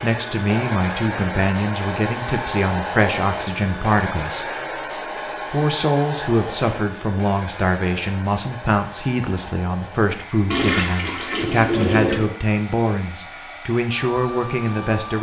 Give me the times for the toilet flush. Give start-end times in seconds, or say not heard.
10.5-12.3.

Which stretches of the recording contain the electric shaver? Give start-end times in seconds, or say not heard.
not heard.